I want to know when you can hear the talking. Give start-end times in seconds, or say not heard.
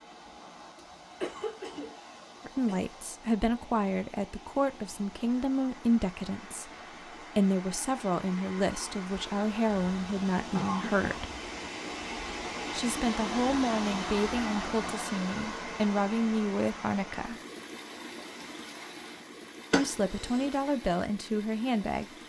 2.5-11.3, 12.7-17.4, 19.7-22.1.